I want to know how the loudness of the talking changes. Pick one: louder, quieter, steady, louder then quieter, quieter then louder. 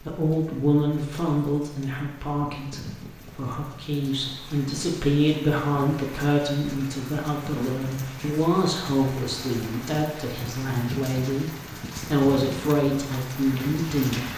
steady.